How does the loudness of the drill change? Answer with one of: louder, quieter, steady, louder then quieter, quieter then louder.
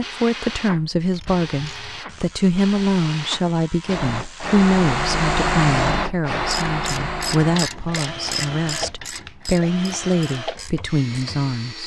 louder then quieter.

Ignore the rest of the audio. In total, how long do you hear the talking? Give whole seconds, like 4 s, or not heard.
12 s.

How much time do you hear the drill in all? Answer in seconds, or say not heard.
12 s.